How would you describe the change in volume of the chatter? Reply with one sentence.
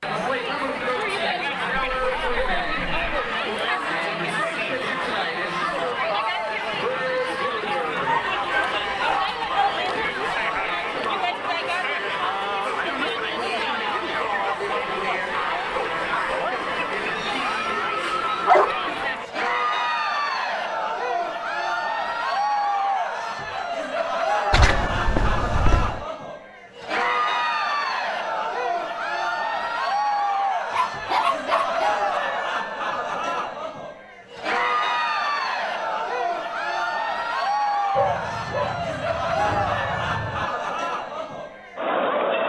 The volume of the chatter stays about the same.